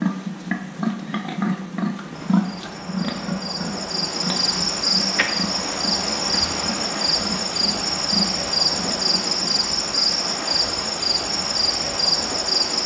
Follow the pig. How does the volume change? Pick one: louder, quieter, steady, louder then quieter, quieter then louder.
quieter.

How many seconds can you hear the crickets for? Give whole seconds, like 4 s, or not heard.
11 s.